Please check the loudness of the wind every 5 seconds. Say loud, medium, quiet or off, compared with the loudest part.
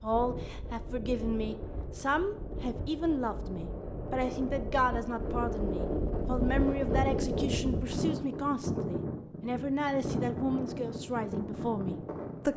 medium, loud, loud.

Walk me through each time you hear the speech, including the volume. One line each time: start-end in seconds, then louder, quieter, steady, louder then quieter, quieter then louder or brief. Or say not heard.
0.0-12.5 steady.